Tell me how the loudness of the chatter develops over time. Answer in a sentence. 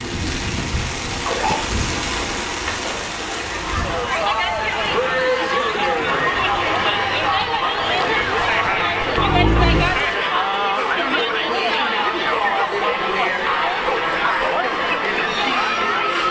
The volume of the chatter stays about the same.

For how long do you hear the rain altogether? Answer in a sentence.
The rain can be heard for 10 seconds in total.